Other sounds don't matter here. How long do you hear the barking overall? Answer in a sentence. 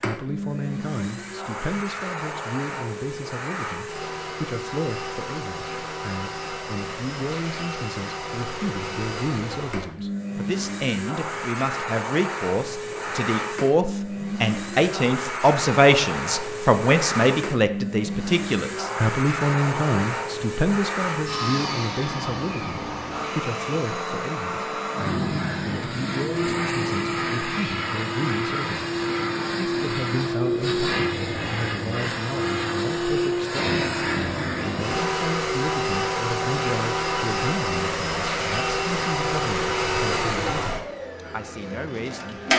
The barking can't be heard in this clip.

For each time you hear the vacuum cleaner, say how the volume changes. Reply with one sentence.
You can hear the vacuum cleaner from 0.0 to 42.5 s, getting louder.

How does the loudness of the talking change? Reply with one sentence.
The volume of the talking goes up, then down.